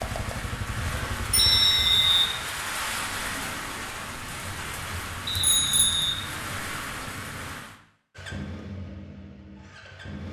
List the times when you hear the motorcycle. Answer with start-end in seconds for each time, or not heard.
0.0-1.6, 8.2-10.2.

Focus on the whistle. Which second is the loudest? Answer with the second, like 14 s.
2 s.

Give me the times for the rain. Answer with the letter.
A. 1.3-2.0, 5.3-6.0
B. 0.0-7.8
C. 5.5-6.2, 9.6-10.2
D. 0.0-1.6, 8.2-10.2
B.